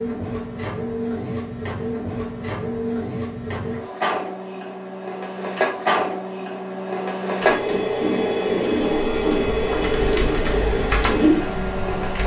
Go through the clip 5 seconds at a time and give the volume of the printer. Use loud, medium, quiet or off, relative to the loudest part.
medium, loud, loud.